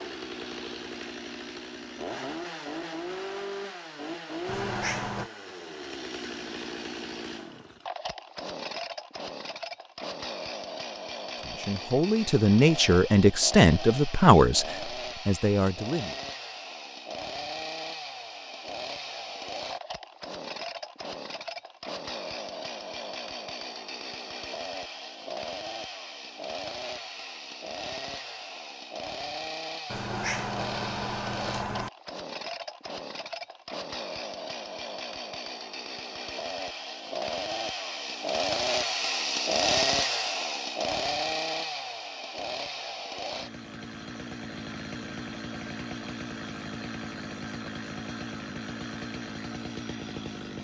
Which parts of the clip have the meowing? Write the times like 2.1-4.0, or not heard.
4.5-5.3, 29.9-31.9.